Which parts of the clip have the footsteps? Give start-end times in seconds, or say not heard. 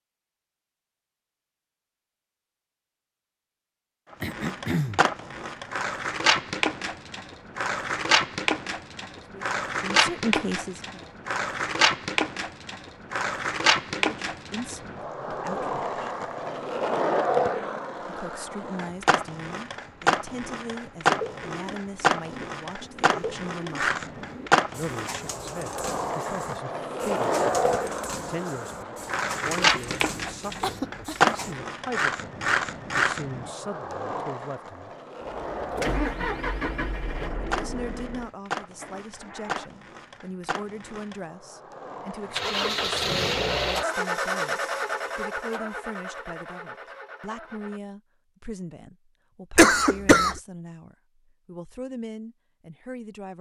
not heard.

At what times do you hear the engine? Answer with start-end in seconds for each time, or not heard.
35.2-39.7, 42.3-47.8.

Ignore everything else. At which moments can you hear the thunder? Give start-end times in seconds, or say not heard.
not heard.